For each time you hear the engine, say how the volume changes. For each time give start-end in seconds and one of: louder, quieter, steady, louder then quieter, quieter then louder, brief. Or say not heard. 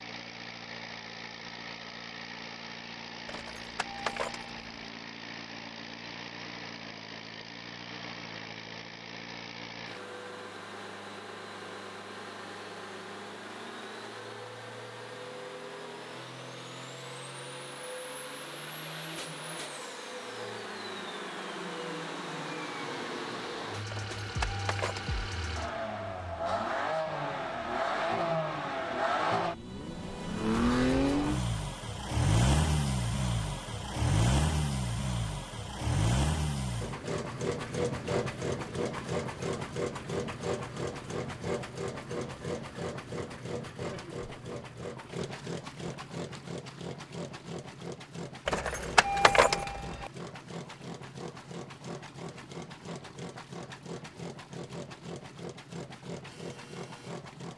0.0-57.5 louder then quieter.